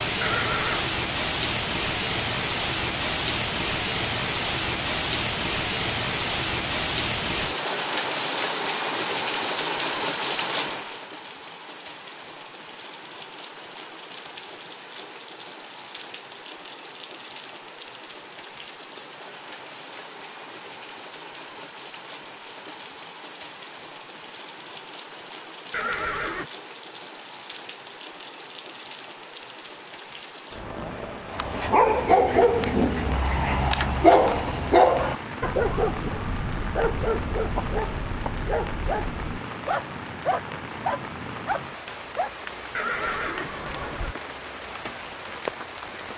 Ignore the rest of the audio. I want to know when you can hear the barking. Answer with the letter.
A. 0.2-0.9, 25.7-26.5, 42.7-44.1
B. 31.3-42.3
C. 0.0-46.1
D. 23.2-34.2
B.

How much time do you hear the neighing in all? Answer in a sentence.
You can hear the neighing for 3 seconds altogether.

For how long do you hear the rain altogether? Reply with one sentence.
The rain can be heard for 46 seconds in total.